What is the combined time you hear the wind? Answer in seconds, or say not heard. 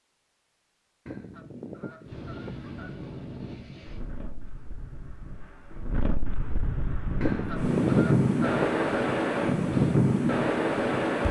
9 s.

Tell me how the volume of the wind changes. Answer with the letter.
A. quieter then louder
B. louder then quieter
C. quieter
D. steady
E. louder
A.